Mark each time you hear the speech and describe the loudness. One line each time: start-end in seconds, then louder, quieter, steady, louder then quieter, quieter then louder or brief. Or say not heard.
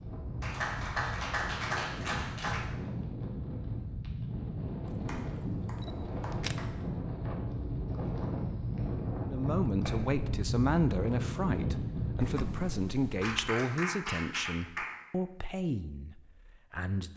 9.2-17.1 quieter.